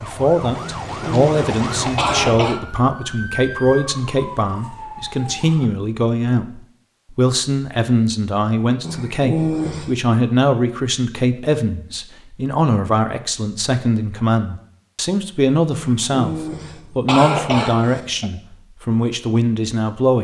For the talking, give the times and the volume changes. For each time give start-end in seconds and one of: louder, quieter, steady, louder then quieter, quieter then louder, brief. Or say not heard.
0.0-20.2 steady.